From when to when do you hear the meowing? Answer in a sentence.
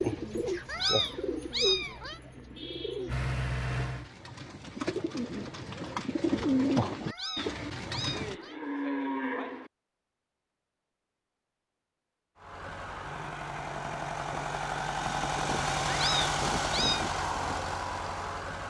The meowing can be heard from 0.7 to 2.2 s, from 7.0 to 8.6 s and from 15.8 to 17.1 s.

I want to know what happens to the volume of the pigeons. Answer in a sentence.
The loudness of the pigeons goes down, then up.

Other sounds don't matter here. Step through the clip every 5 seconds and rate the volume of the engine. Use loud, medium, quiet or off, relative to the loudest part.
medium, off, medium, loud.